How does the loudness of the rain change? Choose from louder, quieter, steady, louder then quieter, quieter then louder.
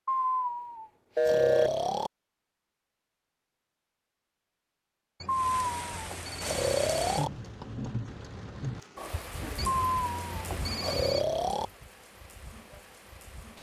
quieter.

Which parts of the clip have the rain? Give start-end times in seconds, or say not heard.
5.3-13.5.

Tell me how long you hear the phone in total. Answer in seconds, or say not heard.
4 s.